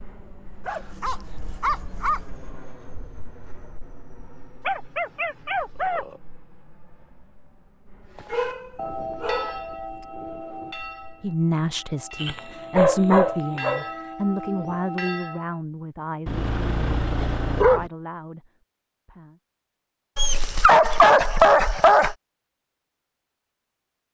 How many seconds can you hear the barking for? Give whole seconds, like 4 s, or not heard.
10 s.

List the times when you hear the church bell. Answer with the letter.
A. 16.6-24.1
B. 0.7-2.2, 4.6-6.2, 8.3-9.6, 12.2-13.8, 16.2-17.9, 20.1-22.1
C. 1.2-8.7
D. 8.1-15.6
D.